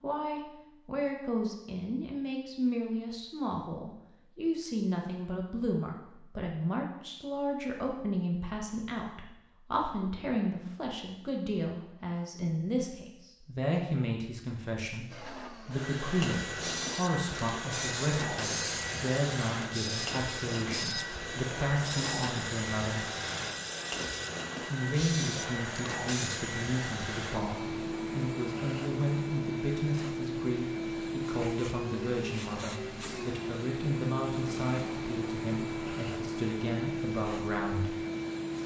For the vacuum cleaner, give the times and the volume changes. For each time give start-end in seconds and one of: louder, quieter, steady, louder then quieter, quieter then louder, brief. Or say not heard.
15.1-38.6 steady.